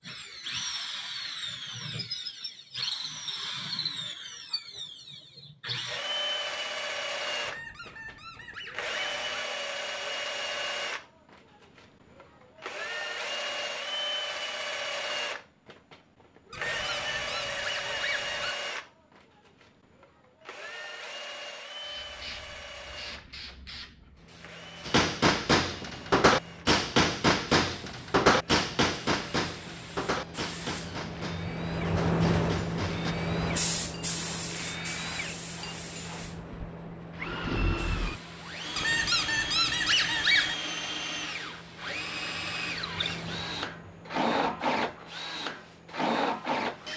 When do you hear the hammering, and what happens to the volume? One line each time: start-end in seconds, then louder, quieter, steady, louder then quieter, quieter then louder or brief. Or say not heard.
24.9-33.1 quieter.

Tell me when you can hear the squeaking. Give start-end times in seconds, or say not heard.
7.4-9.4, 16.5-18.6, 38.8-40.5.